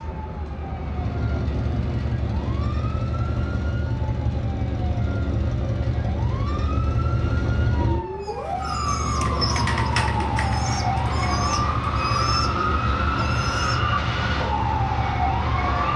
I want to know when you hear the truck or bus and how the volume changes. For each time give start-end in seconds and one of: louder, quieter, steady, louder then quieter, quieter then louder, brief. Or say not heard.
0.0-15.9 steady.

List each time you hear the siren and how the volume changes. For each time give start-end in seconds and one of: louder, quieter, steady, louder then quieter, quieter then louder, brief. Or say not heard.
0.0-15.9 louder.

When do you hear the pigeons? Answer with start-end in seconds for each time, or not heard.
8.2-13.9.